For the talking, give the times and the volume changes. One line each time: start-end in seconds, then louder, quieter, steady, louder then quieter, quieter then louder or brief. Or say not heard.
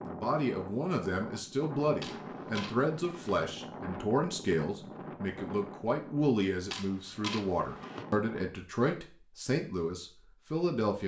0.0-11.0 steady.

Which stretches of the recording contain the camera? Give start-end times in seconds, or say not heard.
2.0-3.4, 6.7-8.1.